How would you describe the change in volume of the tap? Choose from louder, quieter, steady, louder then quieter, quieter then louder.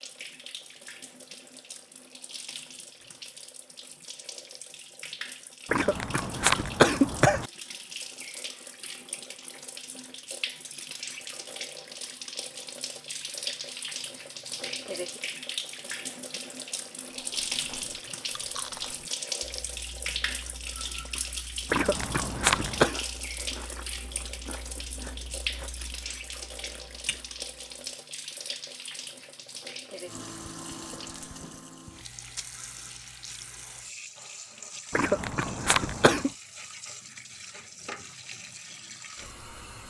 louder then quieter.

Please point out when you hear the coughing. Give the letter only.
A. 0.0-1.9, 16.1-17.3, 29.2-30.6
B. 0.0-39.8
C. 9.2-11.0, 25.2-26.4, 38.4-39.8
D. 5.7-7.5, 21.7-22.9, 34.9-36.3
D.